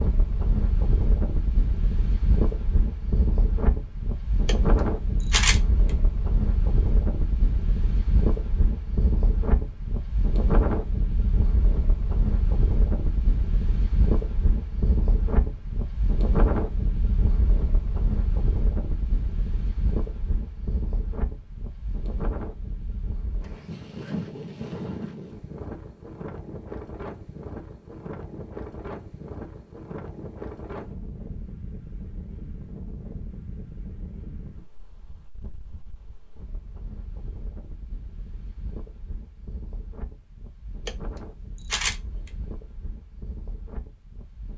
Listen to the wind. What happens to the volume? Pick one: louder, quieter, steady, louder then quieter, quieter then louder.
quieter.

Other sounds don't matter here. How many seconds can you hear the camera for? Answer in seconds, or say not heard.
2 s.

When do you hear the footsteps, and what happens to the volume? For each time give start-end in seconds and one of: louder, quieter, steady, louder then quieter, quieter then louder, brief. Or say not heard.
not heard.